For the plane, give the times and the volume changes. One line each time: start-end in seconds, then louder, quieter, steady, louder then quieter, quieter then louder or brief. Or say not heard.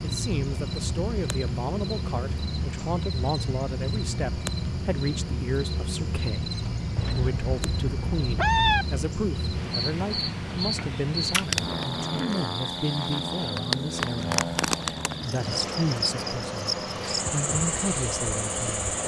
0.0-19.0 steady.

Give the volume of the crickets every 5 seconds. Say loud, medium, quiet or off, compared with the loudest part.
medium, medium, loud, loud.